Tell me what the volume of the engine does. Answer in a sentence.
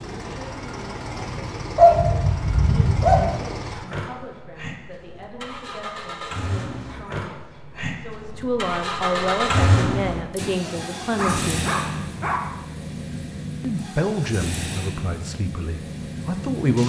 The volume of the engine goes up, then down.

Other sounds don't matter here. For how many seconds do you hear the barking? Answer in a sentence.
You can hear the barking for 3 seconds altogether.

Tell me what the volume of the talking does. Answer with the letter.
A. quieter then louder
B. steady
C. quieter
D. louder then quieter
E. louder
E.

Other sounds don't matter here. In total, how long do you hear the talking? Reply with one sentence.
You can hear the talking for 15 seconds altogether.